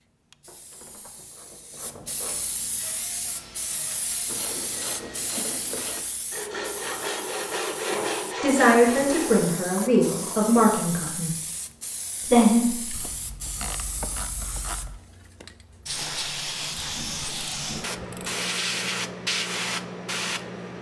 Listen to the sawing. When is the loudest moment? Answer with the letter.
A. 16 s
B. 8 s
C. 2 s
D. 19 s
B.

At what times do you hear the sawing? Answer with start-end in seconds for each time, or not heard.
2.8-9.4.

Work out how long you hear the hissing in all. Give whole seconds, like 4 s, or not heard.
21 s.